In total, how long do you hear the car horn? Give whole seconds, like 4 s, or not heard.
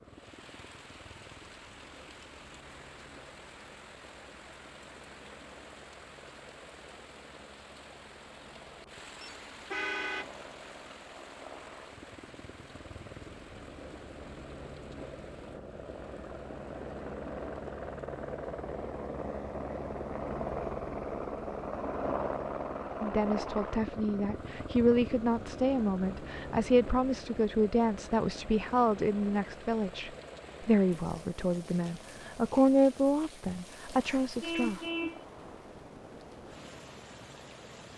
2 s.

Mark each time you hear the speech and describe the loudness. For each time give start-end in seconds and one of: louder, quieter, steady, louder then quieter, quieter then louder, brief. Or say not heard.
23.0-34.8 steady.